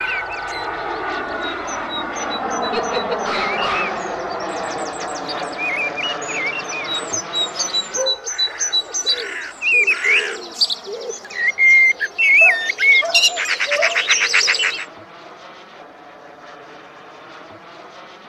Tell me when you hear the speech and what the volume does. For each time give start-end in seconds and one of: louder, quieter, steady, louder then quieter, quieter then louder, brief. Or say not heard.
not heard.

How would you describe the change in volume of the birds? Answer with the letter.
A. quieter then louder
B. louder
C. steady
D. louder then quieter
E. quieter
B.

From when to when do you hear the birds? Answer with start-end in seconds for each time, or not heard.
0.0-14.8.